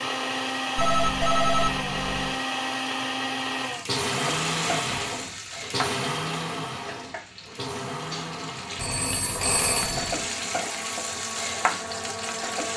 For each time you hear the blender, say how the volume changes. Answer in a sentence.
You can hear the blender from 0.0 to 12.7 s, getting quieter.